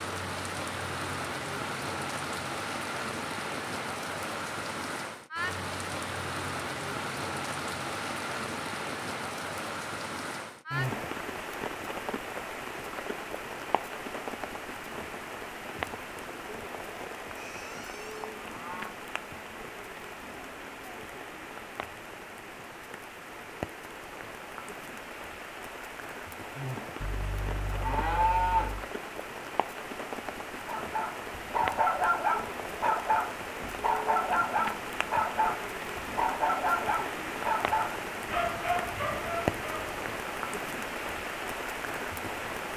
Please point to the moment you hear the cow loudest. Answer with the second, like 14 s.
28 s.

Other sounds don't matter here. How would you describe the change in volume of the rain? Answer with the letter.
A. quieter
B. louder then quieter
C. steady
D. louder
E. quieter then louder
E.